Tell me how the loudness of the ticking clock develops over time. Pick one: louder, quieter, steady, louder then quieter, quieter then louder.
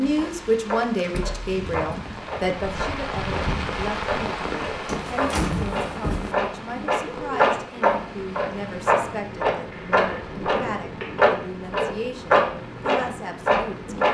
louder.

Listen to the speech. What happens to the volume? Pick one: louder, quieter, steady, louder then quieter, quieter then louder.
quieter.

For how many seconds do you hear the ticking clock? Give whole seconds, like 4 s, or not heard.
14 s.